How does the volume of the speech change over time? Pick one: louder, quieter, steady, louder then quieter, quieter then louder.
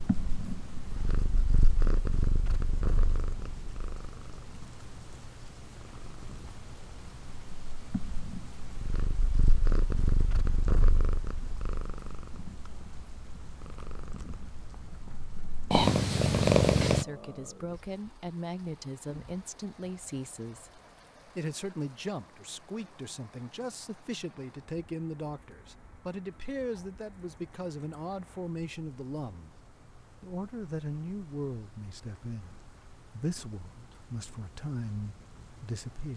steady.